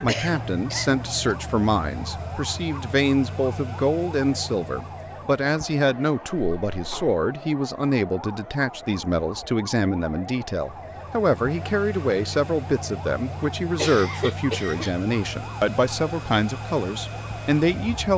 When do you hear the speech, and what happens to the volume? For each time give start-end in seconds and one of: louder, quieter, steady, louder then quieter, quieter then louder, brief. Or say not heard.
0.0-18.1 steady.